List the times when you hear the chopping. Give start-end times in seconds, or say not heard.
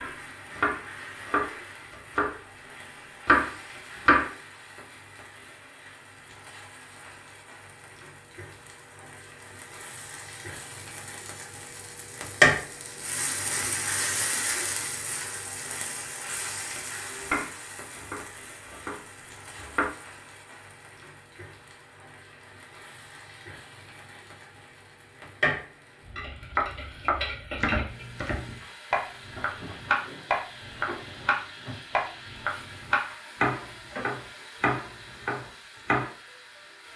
0.0-2.4, 3.0-4.3, 17.1-19.9, 26.6-36.1.